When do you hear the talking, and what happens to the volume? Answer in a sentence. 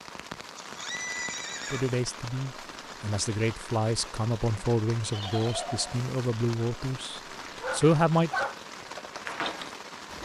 You can hear the talking from 1.7 to 8.3 s, getting louder.